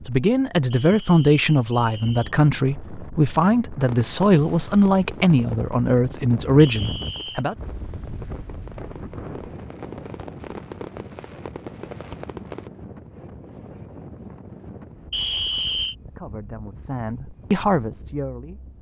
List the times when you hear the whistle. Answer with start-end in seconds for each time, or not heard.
0.7-2.4, 6.5-7.5, 15.1-15.9.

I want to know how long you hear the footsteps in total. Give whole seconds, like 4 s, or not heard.
not heard.